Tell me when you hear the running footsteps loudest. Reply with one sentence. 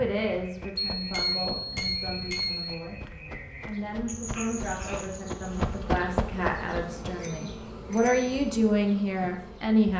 The volume of the running footsteps peaks at 6 seconds.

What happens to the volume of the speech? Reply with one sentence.
The volume of the speech goes up.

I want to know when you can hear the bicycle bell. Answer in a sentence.
You can hear the bicycle bell from 0.9 to 2.8 s and from 7.2 to 8.3 s.